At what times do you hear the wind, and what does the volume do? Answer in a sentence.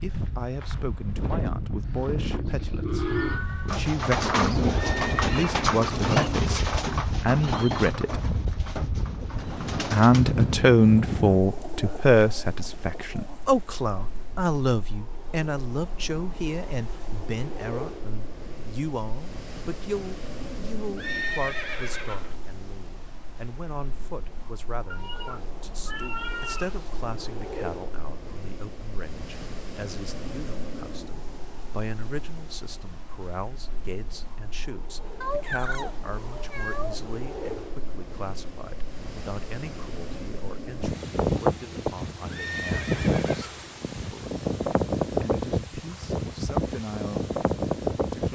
You can hear the wind from 0.0 to 48.3 s, getting quieter then louder.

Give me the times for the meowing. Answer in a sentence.
You can hear the meowing from 2.9 to 3.9 s, from 24.9 to 26.9 s and from 35.2 to 37.0 s.